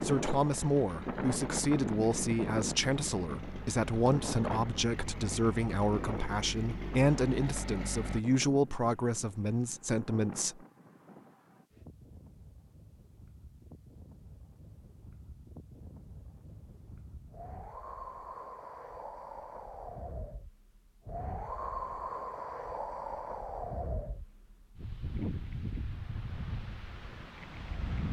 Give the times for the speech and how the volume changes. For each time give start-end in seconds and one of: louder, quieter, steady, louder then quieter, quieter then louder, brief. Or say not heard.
0.0-10.6 steady.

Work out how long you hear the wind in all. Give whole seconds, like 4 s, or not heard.
28 s.